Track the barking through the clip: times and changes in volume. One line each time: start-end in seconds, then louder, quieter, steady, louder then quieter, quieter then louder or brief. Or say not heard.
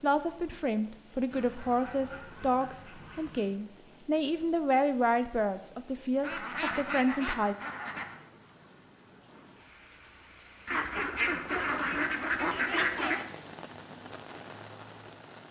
not heard.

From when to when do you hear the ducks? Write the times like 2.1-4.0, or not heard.
1.3-3.5, 6.2-8.2, 10.7-13.2.